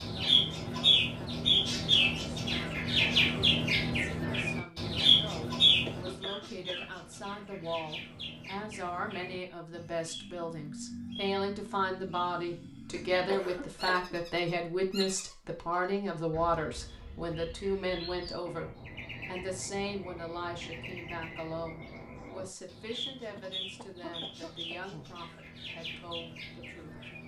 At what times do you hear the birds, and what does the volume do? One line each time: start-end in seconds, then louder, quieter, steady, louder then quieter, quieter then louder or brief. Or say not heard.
0.0-27.2 quieter.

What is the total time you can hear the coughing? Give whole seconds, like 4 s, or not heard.
4 s.